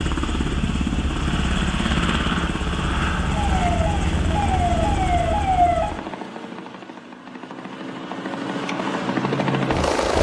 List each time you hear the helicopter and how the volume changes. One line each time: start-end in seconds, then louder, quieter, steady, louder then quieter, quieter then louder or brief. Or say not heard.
0.0-10.1 quieter then louder.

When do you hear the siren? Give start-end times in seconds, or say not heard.
3.3-5.9.